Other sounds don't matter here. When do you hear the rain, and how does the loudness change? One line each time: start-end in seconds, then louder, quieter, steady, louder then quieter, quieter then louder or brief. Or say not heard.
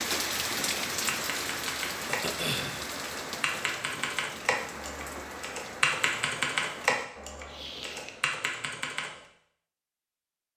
0.0-7.0 quieter.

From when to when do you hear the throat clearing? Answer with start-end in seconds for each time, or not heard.
2.0-2.9, 7.5-8.1.